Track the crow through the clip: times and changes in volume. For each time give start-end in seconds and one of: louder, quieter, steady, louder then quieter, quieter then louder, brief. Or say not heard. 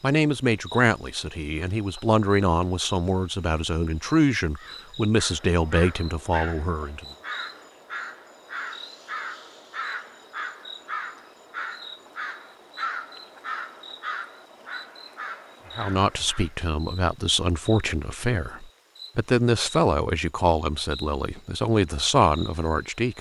4.5-16.6 steady.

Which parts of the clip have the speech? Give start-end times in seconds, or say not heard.
0.0-7.0, 15.8-23.1.